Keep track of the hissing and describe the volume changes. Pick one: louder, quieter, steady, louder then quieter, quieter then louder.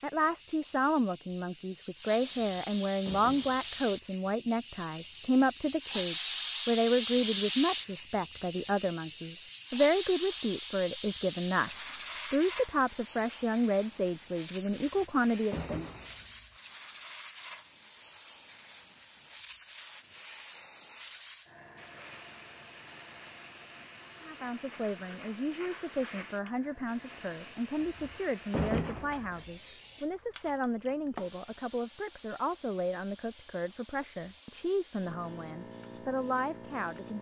quieter.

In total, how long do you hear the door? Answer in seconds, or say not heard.
5 s.